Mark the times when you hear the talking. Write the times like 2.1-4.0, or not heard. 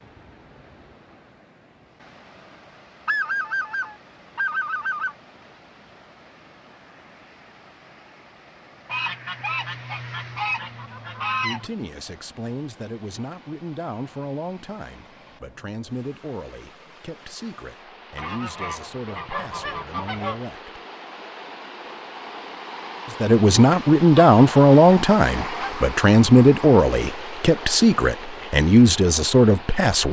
11.4-20.8, 23.1-30.0.